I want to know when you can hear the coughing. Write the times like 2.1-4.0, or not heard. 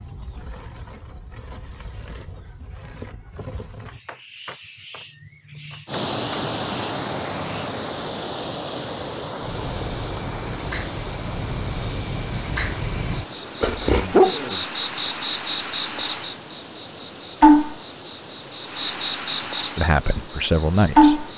not heard.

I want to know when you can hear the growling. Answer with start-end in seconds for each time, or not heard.
13.6-14.6.